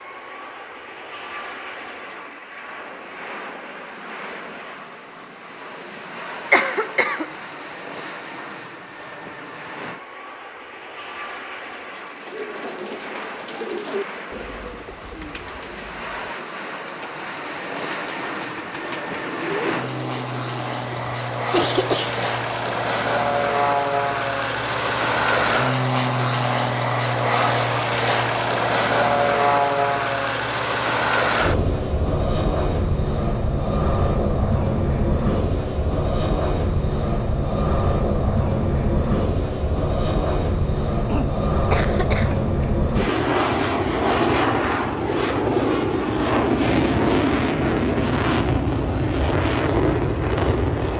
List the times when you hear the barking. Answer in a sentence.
The barking can't be heard in this clip.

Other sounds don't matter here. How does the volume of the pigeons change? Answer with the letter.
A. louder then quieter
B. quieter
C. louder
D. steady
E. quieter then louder
E.